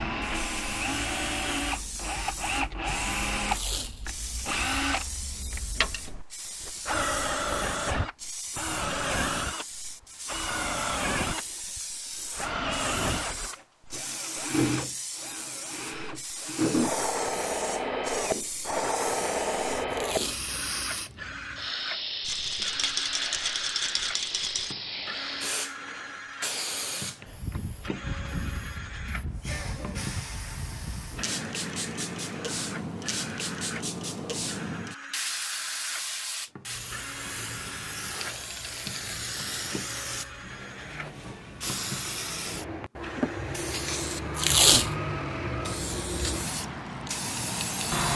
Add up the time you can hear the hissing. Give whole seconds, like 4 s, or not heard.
48 s.